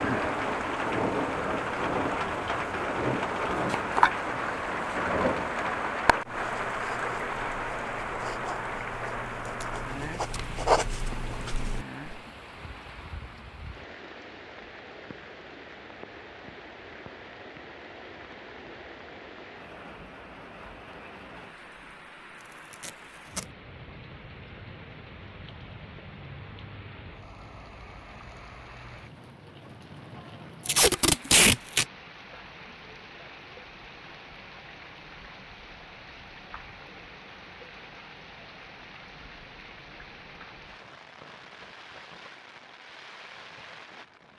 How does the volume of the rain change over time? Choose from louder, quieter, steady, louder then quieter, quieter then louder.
quieter.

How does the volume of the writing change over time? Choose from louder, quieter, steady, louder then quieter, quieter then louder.
louder then quieter.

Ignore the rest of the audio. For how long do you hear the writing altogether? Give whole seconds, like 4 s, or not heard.
6 s.